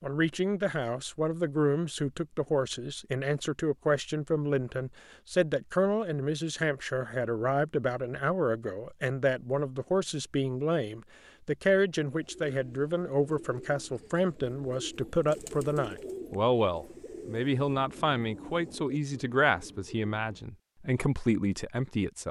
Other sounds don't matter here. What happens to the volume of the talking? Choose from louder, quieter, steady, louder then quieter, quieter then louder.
steady.